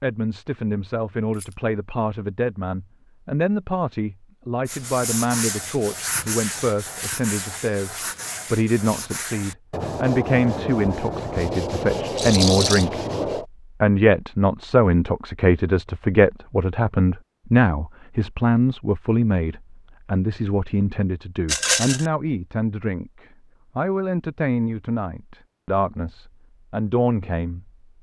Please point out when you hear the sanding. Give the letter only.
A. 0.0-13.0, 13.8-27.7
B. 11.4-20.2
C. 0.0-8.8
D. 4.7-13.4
D.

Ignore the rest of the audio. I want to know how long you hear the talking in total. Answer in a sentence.
You can hear the talking for 27 seconds altogether.